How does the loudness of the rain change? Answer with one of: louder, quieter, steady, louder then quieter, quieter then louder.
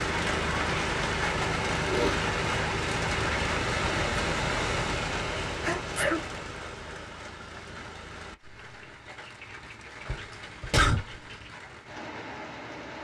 quieter.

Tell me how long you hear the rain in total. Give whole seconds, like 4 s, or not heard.
13 s.